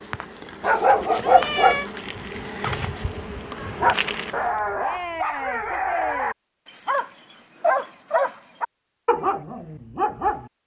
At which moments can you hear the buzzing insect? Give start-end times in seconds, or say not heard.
0.0-4.5.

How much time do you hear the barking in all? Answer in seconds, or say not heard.
10 s.